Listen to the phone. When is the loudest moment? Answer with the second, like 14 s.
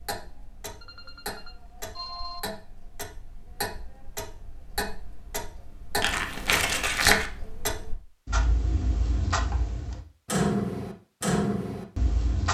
2 s.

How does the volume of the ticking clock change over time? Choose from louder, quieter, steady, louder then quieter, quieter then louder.
louder.